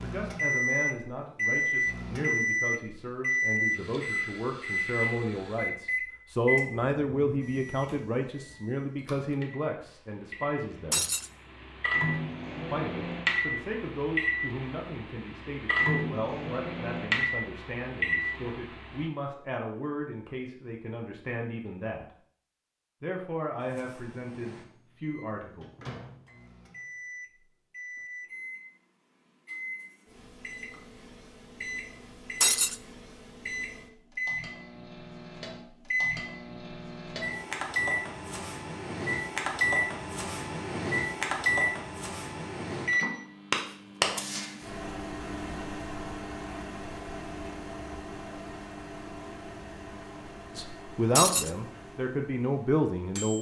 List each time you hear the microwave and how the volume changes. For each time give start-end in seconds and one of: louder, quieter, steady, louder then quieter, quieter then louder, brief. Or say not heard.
0.0-19.1 quieter then louder
23.6-53.3 louder then quieter.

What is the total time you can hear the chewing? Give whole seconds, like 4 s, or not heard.
not heard.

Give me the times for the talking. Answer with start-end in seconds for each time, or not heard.
0.0-11.1, 12.7-22.1, 23.0-25.6, 50.5-53.3.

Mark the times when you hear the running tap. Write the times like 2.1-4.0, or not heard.
not heard.